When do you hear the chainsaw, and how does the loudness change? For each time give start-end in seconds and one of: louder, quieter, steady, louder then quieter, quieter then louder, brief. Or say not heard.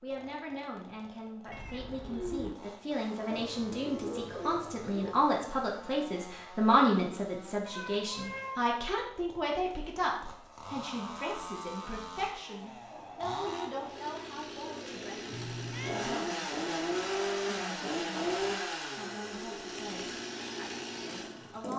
0.0-21.7 louder.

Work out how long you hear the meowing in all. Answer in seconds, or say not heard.
3 s.